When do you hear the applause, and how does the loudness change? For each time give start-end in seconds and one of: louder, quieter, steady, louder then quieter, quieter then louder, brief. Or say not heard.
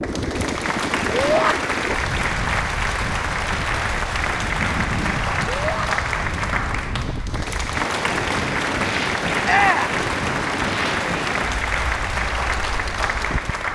0.0-13.7 steady.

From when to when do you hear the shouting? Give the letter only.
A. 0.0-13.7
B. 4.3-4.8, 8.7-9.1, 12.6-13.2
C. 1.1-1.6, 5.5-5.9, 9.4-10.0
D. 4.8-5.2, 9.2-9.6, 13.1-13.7
C.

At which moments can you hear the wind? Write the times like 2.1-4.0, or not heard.
0.0-13.7.